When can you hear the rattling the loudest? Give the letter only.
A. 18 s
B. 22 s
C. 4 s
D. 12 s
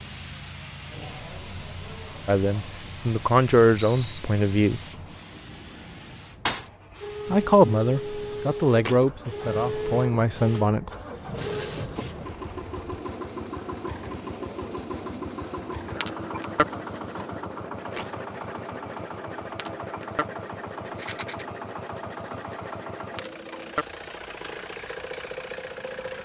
C.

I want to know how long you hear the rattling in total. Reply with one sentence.
You can hear the rattling for 2 seconds altogether.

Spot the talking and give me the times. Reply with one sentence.
You can hear the talking from 2.2 to 4.8 s and from 7.3 to 10.9 s.